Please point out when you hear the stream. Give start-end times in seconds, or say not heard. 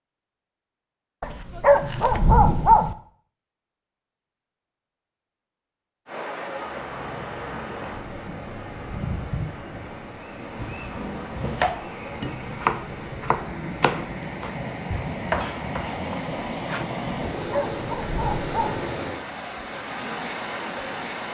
6.0-21.2.